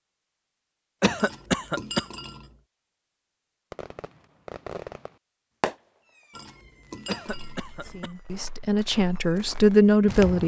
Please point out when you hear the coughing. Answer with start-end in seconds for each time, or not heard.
1.0-2.0, 7.0-8.1.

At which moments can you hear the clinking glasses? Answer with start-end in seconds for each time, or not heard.
1.1-2.6, 6.3-8.0.